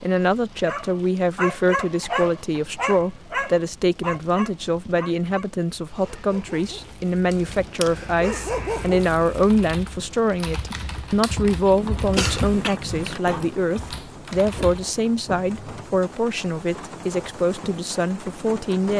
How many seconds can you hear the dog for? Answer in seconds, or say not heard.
9 s.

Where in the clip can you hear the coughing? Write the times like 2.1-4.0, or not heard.
1.8-2.7, 12.2-12.8.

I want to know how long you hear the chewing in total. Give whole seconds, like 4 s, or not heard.
not heard.